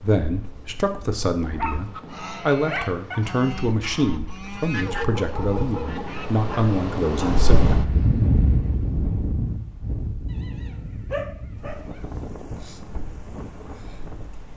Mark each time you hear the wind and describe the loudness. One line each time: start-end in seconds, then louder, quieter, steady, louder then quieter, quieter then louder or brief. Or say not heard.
0.0-14.5 louder then quieter.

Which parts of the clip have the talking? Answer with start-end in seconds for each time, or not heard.
0.0-7.8.